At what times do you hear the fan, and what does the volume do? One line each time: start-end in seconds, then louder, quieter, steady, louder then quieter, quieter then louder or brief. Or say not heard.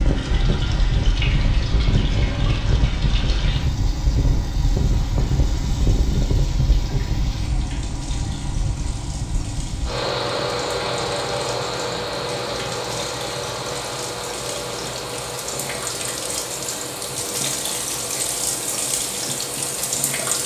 0.0-20.4 quieter.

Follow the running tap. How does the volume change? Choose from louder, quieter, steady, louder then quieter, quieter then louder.
quieter then louder.